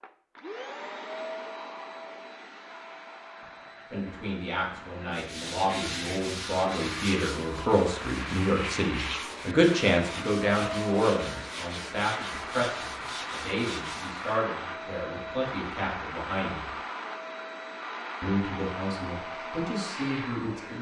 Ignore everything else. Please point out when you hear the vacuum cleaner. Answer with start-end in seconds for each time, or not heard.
0.0-20.7.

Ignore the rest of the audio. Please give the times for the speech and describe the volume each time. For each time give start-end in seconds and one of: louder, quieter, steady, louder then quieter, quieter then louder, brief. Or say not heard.
3.9-16.7 louder then quieter
18.2-20.7 brief.